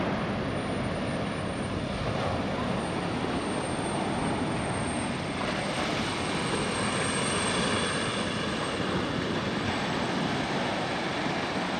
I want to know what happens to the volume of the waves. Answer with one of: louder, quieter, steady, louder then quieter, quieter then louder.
steady.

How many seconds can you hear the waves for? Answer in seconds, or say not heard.
12 s.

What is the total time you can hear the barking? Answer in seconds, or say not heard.
not heard.